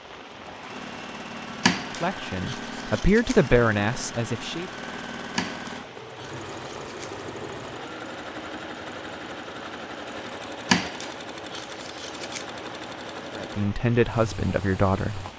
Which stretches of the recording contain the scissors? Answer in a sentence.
You can hear the scissors from 1.6 to 3.5 s, from 5.3 to 7.2 s and from 10.7 to 12.4 s.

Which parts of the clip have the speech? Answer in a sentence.
You can hear the speech from 2.0 to 4.7 s and from 13.3 to 15.2 s.